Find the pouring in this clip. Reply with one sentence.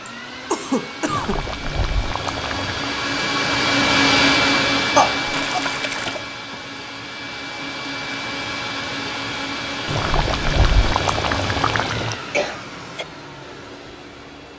You can hear the pouring from 1.1 to 2.9 s, from 5.3 to 6.2 s and from 9.8 to 12.2 s.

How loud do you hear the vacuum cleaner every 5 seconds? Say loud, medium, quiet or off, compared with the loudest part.
loud, medium, medium.